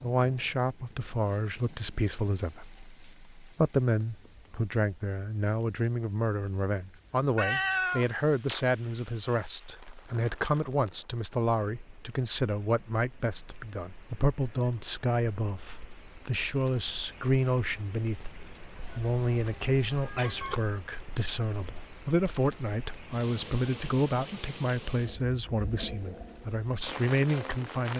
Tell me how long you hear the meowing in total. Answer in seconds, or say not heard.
3 s.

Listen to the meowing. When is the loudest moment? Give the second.
8 s.